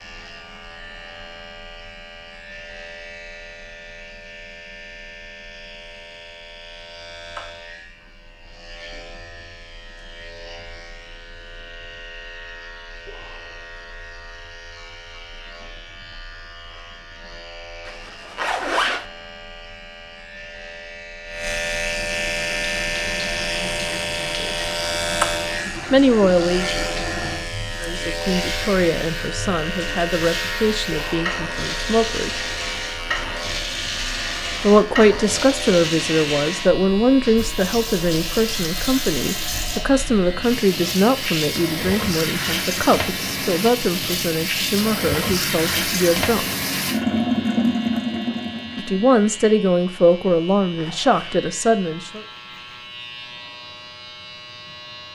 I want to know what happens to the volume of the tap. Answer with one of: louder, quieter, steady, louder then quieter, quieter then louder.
louder.